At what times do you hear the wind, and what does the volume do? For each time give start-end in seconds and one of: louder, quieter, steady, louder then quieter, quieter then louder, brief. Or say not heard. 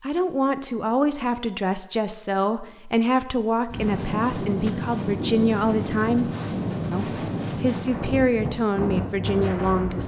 3.6-10.0 steady.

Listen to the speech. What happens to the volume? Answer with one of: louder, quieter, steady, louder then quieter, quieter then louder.
steady.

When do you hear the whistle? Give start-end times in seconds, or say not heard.
not heard.